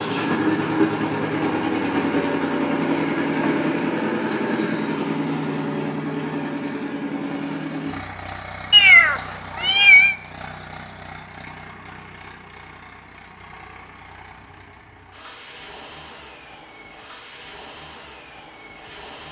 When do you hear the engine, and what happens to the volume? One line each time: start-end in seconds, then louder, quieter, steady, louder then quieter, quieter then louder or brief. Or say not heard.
0.0-19.2 quieter.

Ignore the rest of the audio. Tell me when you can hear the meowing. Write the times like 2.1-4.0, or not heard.
8.7-10.2.